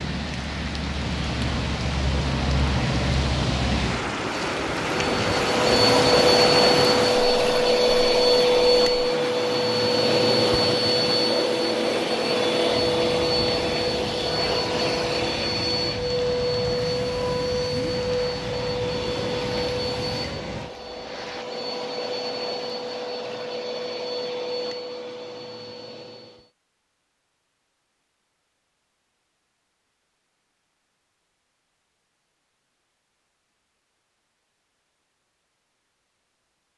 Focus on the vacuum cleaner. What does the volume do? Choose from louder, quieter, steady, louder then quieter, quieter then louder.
quieter.